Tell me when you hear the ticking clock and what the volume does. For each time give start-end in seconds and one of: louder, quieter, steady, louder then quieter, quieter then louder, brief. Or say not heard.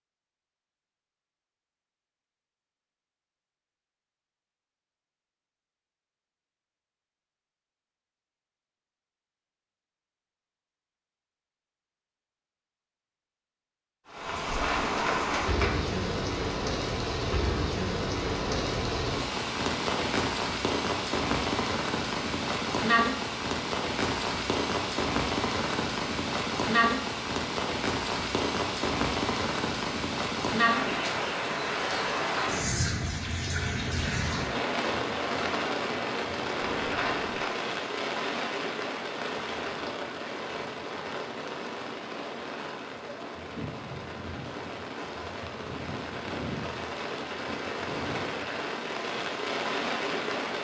not heard.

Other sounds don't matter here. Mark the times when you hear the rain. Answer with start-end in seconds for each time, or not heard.
14.1-50.5.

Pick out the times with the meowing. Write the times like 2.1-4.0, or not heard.
not heard.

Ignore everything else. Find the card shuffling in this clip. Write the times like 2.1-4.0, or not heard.
14.2-15.9, 36.8-37.5.